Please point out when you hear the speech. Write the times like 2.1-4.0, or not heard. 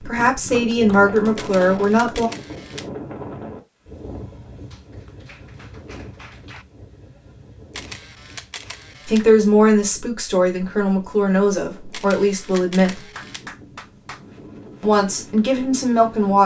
0.0-2.3, 9.1-13.1, 14.8-16.4.